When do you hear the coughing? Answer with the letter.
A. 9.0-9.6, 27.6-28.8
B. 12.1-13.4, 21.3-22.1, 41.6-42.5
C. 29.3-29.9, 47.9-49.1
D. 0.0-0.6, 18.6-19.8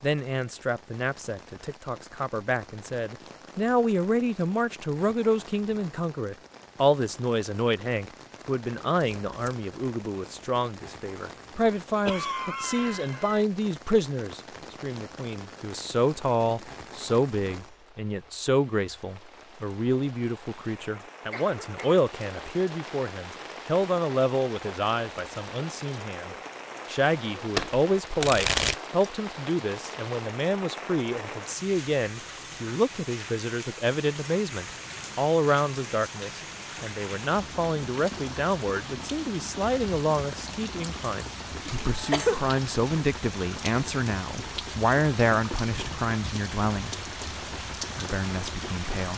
B.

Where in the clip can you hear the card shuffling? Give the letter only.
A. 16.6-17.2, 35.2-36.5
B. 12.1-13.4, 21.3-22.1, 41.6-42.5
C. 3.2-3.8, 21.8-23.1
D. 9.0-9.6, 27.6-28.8
D.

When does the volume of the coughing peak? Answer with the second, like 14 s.
42 s.